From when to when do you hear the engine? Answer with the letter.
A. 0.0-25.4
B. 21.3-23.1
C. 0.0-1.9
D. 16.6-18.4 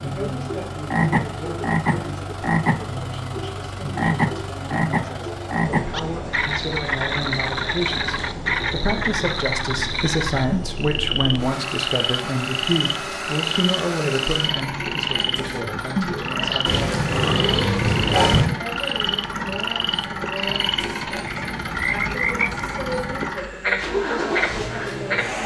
A.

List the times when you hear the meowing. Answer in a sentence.
The meowing can be heard from 16.6 to 18.4 s.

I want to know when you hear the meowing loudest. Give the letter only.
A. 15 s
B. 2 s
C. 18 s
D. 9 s
C.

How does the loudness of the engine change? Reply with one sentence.
The loudness of the engine goes up.